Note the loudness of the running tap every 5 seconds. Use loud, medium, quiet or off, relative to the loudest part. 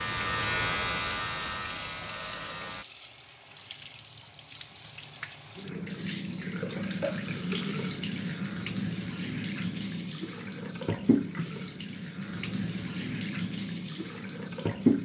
quiet, loud, loud.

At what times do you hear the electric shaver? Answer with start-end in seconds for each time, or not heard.
0.0-2.9.